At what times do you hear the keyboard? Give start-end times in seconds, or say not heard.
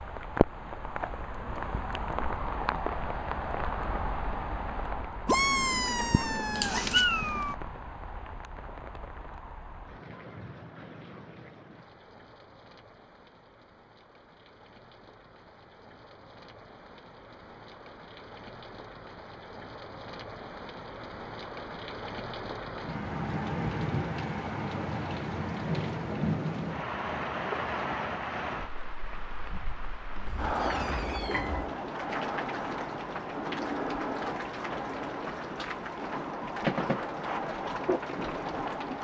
not heard.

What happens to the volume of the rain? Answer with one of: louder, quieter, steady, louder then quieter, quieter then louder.
quieter then louder.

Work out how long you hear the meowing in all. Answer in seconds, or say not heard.
4 s.